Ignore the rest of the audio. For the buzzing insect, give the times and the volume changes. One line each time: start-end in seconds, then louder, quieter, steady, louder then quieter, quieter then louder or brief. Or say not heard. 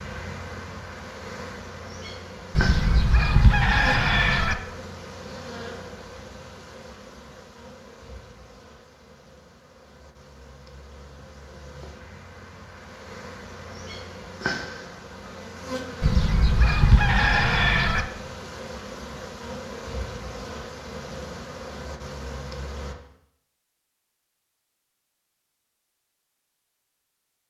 0.0-22.9 quieter then louder.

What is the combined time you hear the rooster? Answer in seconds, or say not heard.
4 s.